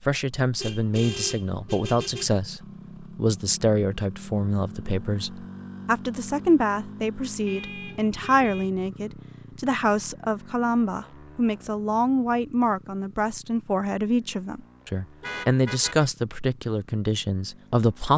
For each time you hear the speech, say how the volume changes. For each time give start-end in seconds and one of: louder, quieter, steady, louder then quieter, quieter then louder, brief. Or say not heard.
0.0-18.1 steady.